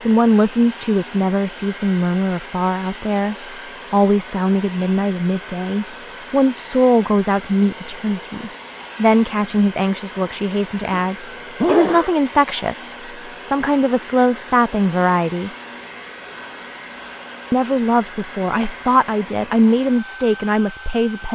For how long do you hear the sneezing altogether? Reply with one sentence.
You can hear the sneezing for 2 seconds altogether.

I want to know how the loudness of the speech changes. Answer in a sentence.
The loudness of the speech stays about the same.